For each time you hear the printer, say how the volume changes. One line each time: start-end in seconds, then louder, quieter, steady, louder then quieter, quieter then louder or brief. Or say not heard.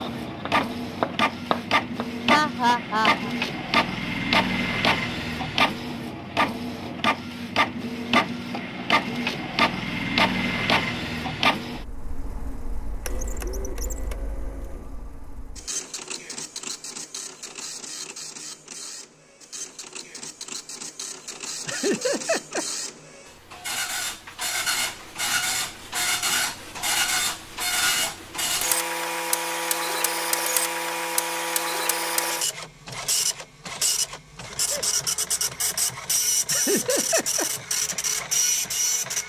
0.0-39.2 quieter then louder.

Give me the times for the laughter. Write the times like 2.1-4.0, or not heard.
2.2-3.2, 21.6-22.6, 36.5-37.5.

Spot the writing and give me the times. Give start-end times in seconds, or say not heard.
0.0-2.1.